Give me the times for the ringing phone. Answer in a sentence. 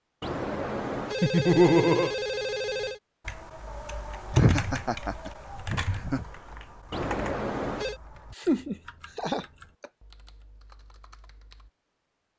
The ringing phone can be heard from 0.2 to 3.0 s and from 6.9 to 8.0 s.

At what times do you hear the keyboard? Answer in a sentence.
The keyboard can be heard from 3.2 to 11.7 s.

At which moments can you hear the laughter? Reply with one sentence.
The laughter can be heard from 1.2 to 2.1 s, from 4.3 to 6.2 s and from 8.3 to 9.9 s.